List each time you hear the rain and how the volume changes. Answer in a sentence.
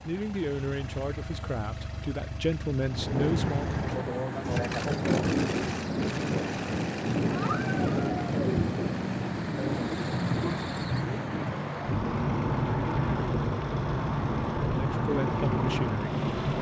You can hear the rain from 2.8 to 16.5 s, at a steady volume.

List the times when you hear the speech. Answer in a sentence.
You can hear the speech from 0.0 to 3.8 s and from 14.7 to 16.2 s.